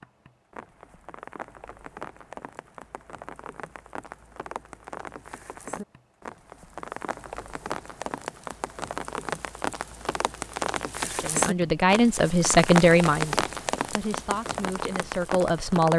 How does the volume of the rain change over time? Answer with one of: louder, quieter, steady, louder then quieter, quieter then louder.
louder.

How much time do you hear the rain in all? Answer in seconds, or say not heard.
16 s.